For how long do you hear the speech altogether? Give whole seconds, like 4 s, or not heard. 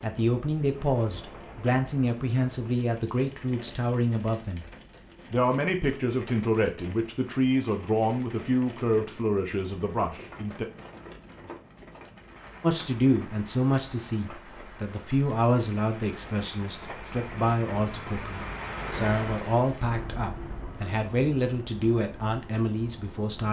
21 s.